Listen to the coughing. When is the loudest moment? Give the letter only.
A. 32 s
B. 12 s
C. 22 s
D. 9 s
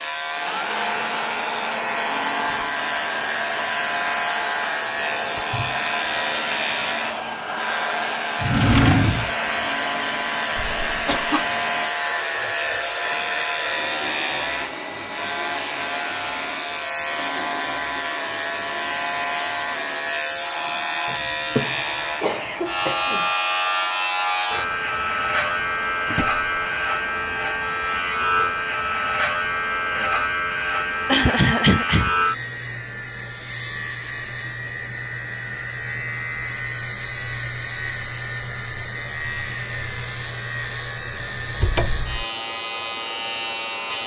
A.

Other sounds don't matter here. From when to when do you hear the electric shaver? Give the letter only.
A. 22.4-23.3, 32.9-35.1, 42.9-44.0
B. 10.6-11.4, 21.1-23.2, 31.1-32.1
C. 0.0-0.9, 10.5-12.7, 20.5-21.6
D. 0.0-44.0
D.